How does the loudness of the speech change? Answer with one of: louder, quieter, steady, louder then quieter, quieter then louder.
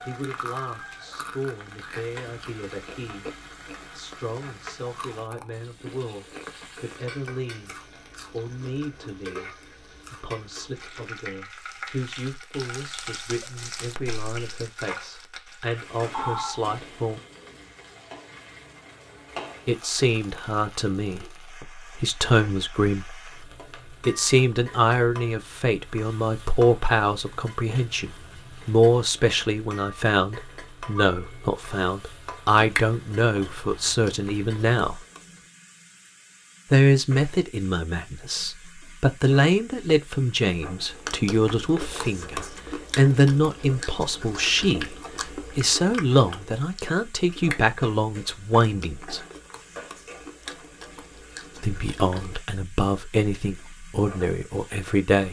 louder.